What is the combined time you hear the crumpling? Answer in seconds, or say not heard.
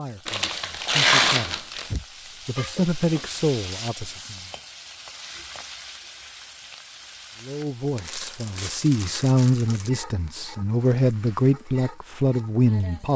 4 s.